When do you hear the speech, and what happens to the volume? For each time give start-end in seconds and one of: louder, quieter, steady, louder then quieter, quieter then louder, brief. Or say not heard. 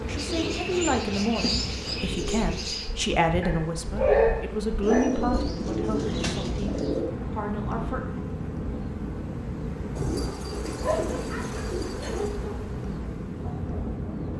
0.0-8.2 quieter.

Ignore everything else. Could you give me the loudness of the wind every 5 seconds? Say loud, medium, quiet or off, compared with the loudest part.
medium, loud, loud.